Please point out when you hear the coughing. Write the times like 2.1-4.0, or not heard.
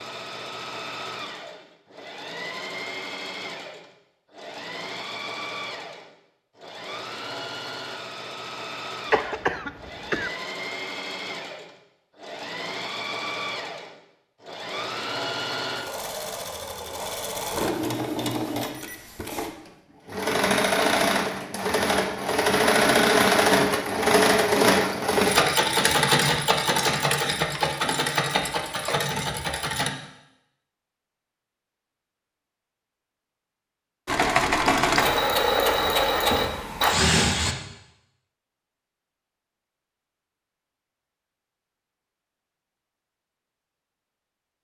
9.1-10.3.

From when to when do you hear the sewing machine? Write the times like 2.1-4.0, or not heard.
0.0-29.9, 34.0-37.5.